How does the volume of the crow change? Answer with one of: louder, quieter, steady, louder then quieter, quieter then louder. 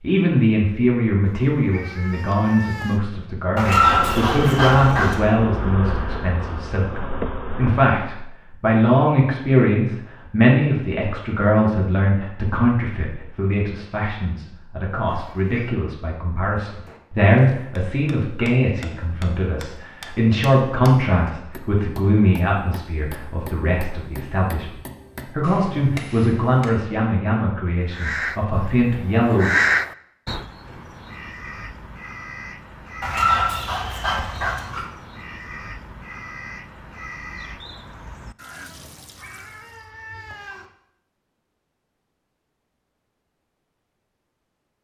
quieter.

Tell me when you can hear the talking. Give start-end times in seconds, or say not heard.
0.0-29.5.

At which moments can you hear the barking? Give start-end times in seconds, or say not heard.
3.5-5.3, 33.0-34.9.